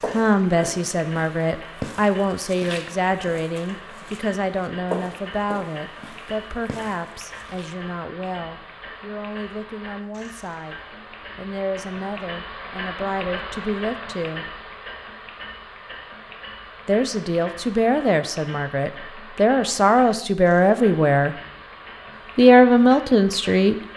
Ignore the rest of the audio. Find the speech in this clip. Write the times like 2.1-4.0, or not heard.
0.1-14.5, 16.9-21.4, 22.4-23.8.